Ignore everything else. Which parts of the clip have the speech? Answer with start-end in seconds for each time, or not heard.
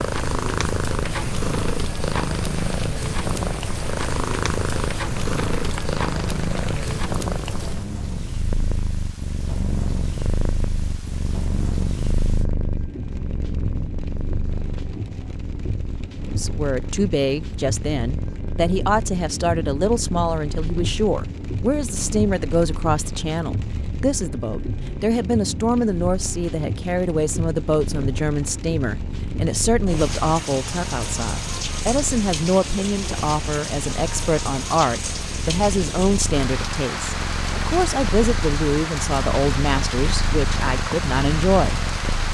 16.4-42.3.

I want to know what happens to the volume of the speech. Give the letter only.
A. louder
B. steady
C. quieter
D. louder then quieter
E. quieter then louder
B.